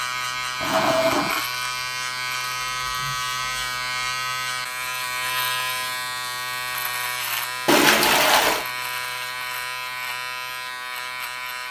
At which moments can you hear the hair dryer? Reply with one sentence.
You can't hear the hair dryer here.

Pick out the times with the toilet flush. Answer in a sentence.
You can hear the toilet flush from 0.6 to 1.4 s and from 7.7 to 8.7 s.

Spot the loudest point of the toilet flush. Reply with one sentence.
The loudest moment of the toilet flush is at 8 seconds.